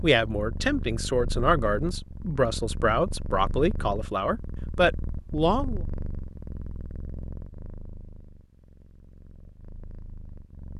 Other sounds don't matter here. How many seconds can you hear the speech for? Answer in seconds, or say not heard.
6 s.